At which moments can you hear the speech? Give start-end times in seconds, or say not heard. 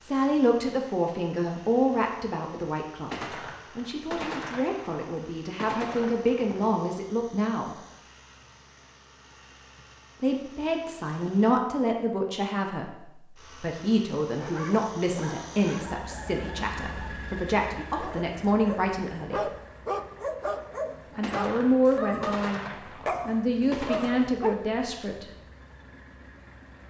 0.0-3.1, 3.8-7.8, 10.2-19.4, 21.1-22.6, 23.2-25.2.